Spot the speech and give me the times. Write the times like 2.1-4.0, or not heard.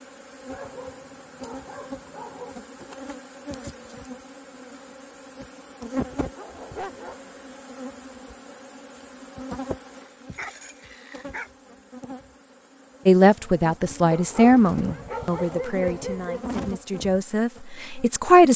13.1-18.5.